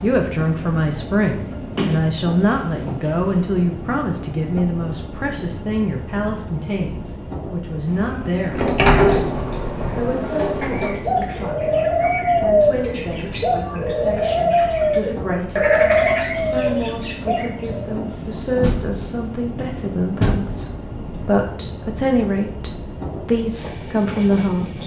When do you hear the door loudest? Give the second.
9 s.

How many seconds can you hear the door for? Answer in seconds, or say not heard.
7 s.